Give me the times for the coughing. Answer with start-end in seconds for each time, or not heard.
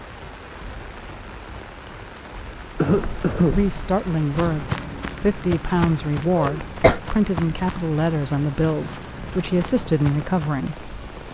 2.8-3.6, 6.3-7.0.